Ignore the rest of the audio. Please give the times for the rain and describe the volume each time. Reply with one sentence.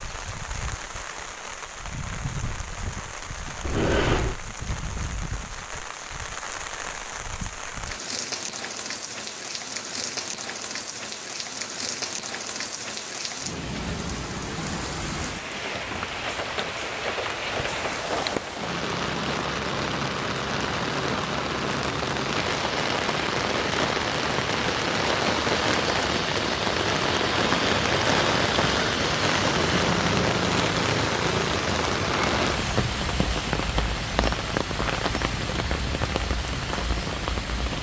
The rain can be heard from 0.0 to 37.7 s, getting louder.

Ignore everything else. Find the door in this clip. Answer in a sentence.
You can hear the door from 3.6 to 4.4 s.